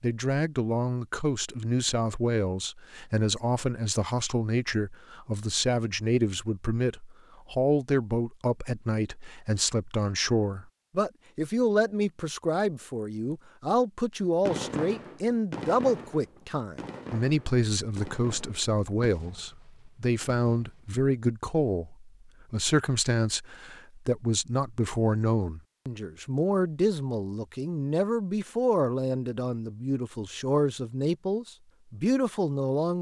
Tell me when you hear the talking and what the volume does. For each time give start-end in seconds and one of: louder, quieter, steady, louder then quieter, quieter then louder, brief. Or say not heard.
0.0-32.9 steady.